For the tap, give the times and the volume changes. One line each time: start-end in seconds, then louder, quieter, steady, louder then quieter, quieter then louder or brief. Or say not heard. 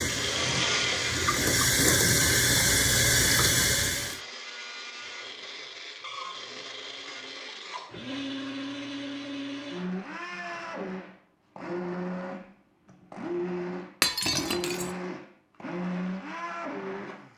0.0-4.2 louder.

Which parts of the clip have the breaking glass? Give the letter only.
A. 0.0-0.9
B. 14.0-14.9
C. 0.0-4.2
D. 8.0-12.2
B.